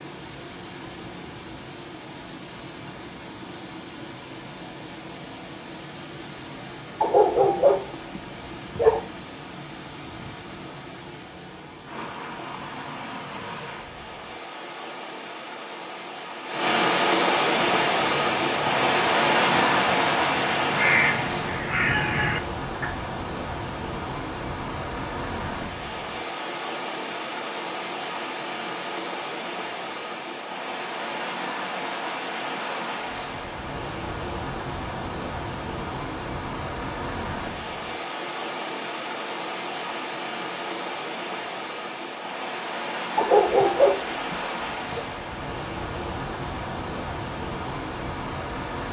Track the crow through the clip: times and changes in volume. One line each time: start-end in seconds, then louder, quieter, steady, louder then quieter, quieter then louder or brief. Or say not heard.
17.6-22.9 louder.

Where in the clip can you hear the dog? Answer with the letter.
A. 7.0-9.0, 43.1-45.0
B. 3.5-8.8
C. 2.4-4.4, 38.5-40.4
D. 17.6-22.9
A.